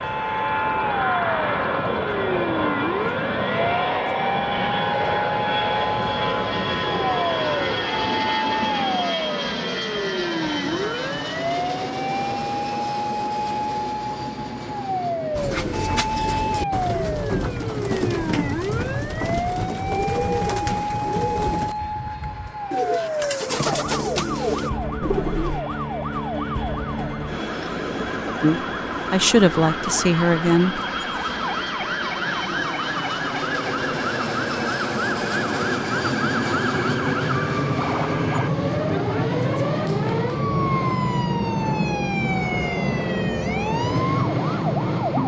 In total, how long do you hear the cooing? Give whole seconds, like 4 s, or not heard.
10 s.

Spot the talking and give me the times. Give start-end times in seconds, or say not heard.
28.4-30.8.